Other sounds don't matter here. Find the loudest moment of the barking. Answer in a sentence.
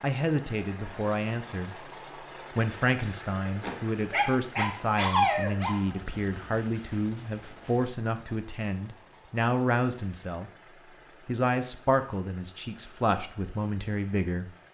The volume of the barking peaks at 5 seconds.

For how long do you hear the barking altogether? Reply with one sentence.
You can hear the barking for 3 seconds altogether.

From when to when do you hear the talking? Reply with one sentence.
The talking can be heard from 0.0 to 1.9 s, from 2.5 to 10.5 s and from 11.2 to 14.5 s.